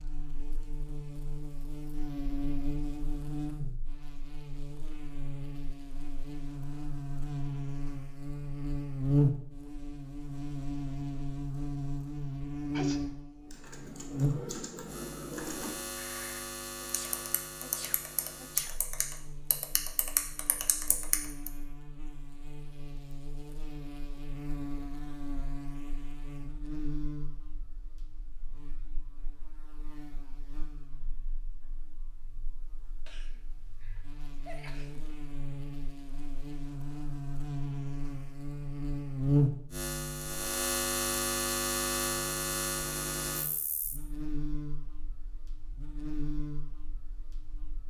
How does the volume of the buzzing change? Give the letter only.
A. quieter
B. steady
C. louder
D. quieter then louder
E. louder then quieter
D.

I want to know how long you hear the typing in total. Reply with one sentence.
You can hear the typing for 8 seconds altogether.